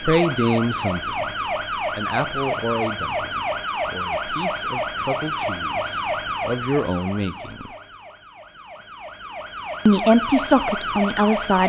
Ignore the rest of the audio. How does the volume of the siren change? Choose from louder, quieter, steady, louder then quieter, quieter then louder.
quieter then louder.